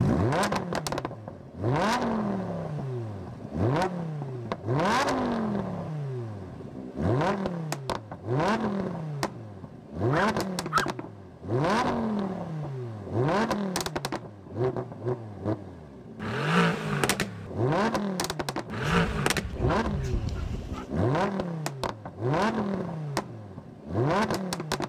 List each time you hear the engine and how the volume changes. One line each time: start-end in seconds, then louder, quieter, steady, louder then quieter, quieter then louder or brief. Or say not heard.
0.0-24.8 steady.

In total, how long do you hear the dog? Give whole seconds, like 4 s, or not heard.
3 s.